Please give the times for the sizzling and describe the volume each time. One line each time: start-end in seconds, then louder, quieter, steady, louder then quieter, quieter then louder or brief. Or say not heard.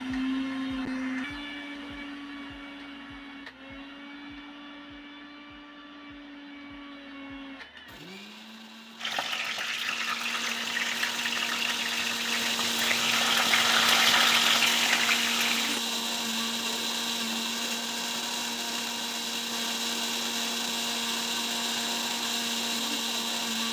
8.9-15.8 louder.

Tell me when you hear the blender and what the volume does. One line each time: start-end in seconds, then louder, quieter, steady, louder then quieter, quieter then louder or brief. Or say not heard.
0.0-23.6 quieter then louder.